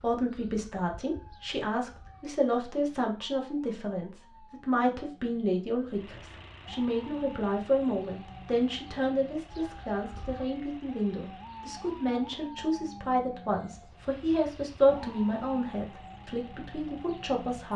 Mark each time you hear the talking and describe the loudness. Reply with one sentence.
The talking can be heard from 0.0 to 17.7 s, at a steady volume.